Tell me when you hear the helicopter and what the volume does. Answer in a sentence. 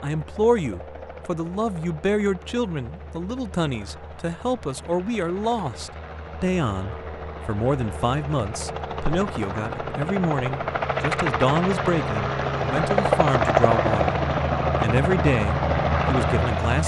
You can hear the helicopter from 0.0 to 16.8 s, getting louder.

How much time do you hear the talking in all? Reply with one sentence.
You can hear the talking for 17 seconds altogether.